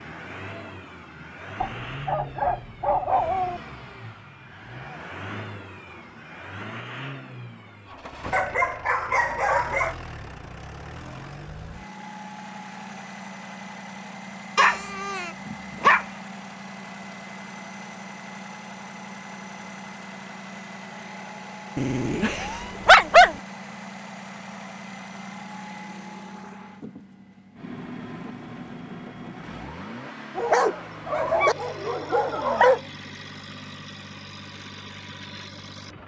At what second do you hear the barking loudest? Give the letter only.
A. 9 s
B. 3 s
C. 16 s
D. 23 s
D.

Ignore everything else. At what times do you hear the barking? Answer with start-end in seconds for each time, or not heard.
1.6-3.6, 8.3-9.9, 14.6-16.1, 21.8-23.4, 30.4-32.8.